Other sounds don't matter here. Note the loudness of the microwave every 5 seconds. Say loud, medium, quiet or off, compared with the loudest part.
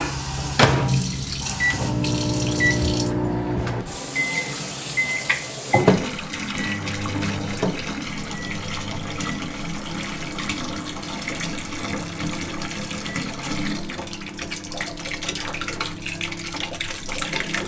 loud, loud, quiet, quiet.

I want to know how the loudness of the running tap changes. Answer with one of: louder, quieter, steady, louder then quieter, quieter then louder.
steady.